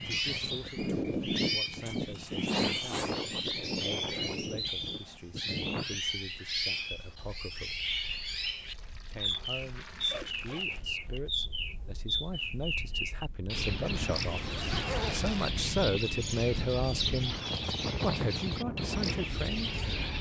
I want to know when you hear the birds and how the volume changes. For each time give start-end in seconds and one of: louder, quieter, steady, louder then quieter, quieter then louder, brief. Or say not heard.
0.0-20.1 steady.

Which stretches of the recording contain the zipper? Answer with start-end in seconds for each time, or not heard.
1.7-3.2, 10.1-11.3, 13.9-15.5.